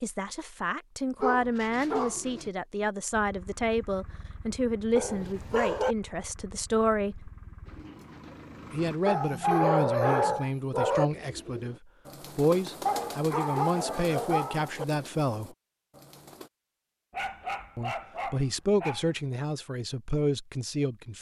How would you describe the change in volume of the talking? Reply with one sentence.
The volume of the talking stays about the same.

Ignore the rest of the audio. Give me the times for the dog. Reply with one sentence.
You can hear the dog from 1.2 to 2.5 s, from 5.0 to 6.0 s, from 9.1 to 11.1 s, from 12.8 to 14.8 s and from 17.1 to 19.2 s.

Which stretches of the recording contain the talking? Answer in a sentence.
You can hear the talking from 0.0 to 7.3 s, from 8.7 to 11.8 s, from 12.3 to 15.5 s and from 17.8 to 21.1 s.